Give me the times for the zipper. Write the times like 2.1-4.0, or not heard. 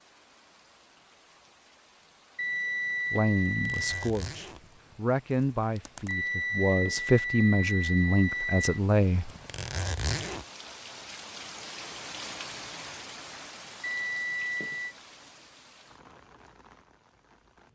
3.5-6.2, 9.2-10.4.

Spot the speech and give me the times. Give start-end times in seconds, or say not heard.
3.1-9.3.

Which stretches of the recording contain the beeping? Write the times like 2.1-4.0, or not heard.
2.4-4.0, 6.0-8.8, 13.8-14.9.